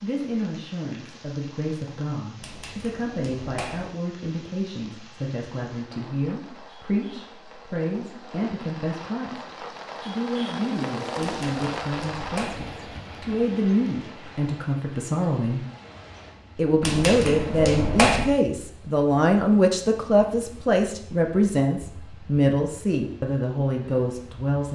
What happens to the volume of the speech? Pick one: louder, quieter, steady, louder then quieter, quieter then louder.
louder.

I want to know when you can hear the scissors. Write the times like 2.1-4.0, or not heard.
2.4-3.8, 11.2-12.6, 16.8-18.2.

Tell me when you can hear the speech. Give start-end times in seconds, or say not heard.
0.0-15.7, 16.6-24.6.